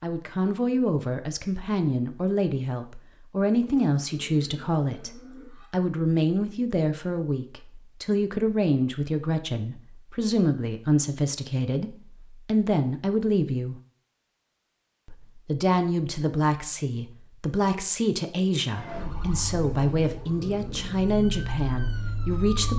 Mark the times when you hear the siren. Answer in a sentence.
The siren can be heard from 18.7 to 22.7 s.